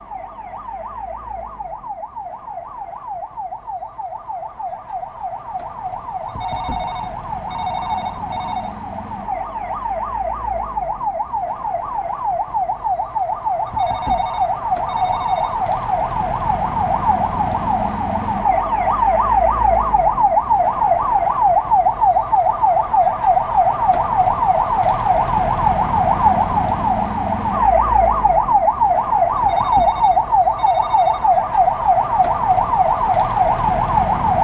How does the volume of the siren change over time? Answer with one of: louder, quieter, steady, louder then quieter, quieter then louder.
louder.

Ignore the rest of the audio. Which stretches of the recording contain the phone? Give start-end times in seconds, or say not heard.
6.2-8.8, 13.7-15.6, 29.4-31.3.